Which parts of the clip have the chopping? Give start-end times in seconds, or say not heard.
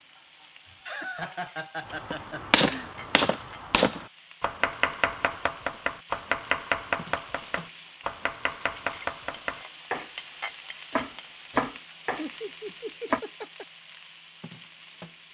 1.9-13.2.